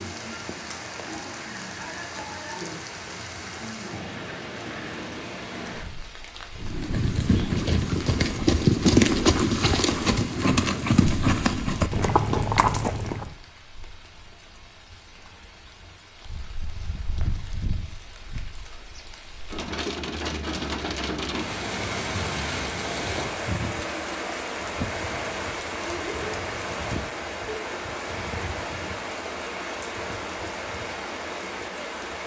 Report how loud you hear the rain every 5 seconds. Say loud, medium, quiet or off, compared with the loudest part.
medium, medium, quiet, medium, loud, loud, loud.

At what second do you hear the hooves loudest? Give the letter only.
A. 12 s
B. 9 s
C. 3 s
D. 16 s
B.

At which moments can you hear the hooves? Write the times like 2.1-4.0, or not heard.
6.5-13.3.